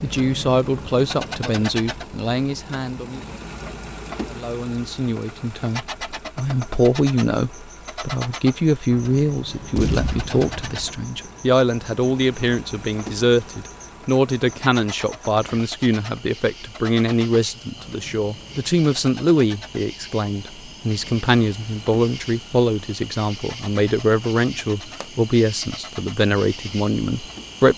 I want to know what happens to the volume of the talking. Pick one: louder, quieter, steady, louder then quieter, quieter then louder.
steady.